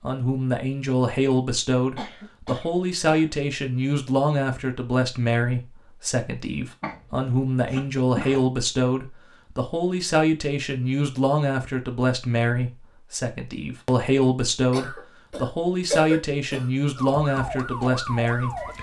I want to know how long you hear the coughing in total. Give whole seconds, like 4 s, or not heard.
5 s.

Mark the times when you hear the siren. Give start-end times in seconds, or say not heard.
16.9-18.7.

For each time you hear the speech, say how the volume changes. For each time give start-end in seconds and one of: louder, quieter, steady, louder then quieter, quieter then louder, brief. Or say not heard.
0.0-18.7 steady.